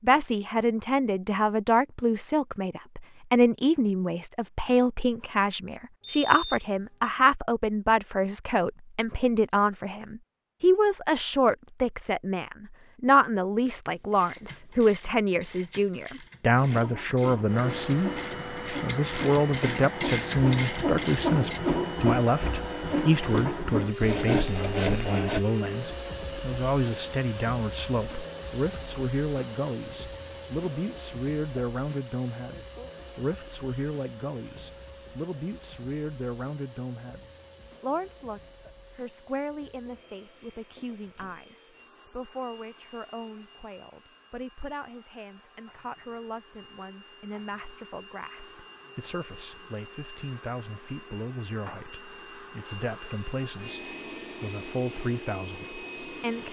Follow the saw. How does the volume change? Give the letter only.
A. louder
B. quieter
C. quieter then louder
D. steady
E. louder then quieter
A.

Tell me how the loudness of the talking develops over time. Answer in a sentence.
The volume of the talking goes down.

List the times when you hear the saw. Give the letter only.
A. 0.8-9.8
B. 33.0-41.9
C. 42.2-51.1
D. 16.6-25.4
D.